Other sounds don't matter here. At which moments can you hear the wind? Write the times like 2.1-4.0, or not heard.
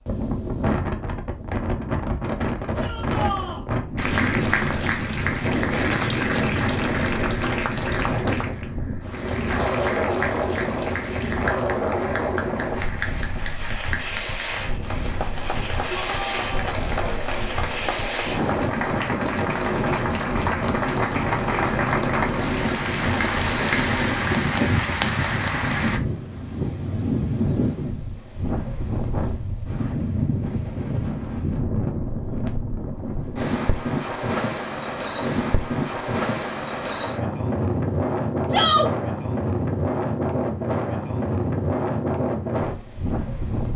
0.0-43.7.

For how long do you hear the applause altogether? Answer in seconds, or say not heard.
22 s.